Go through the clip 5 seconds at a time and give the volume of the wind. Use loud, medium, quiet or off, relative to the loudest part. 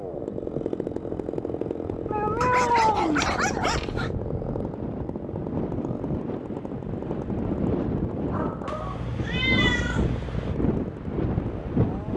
medium, loud, loud.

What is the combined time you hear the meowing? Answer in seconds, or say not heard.
4 s.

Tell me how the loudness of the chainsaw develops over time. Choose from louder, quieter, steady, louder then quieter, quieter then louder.
quieter.